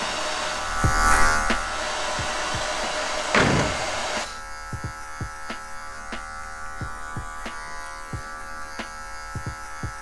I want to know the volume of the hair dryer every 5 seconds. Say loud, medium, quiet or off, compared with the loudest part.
loud, off.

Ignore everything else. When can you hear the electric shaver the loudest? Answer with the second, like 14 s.
1 s.